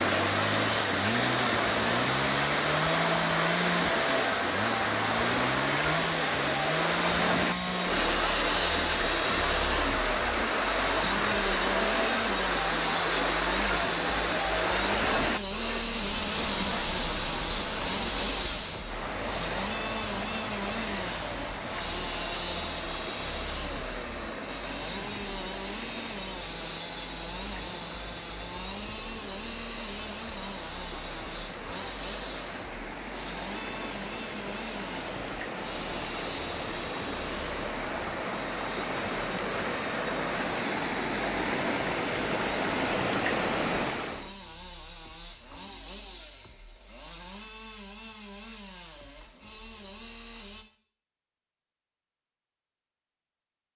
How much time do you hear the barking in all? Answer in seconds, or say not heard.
not heard.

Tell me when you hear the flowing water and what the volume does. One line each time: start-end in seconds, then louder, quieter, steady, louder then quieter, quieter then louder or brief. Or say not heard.
0.0-44.3 quieter then louder.